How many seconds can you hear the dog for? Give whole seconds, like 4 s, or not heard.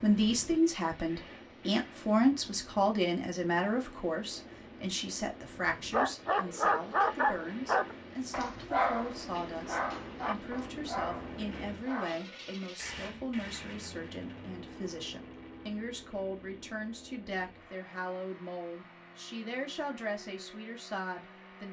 6 s.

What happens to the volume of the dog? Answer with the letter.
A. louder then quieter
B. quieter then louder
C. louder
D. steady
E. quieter
E.